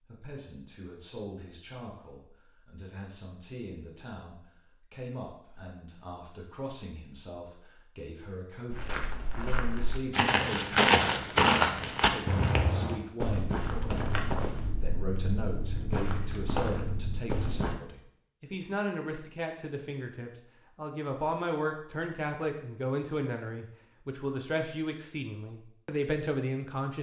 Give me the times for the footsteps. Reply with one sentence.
You can hear the footsteps from 8.7 to 17.8 s.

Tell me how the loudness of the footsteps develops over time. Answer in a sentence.
The volume of the footsteps goes up, then down.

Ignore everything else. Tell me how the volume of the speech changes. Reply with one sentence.
The volume of the speech goes up.